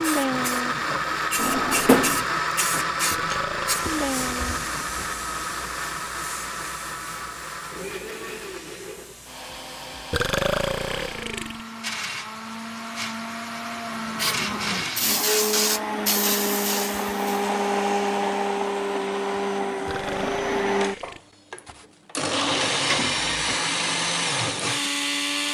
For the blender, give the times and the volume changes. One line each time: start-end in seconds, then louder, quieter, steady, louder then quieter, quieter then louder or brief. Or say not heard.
0.0-25.4 quieter then louder.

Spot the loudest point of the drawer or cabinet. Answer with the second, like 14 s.
2 s.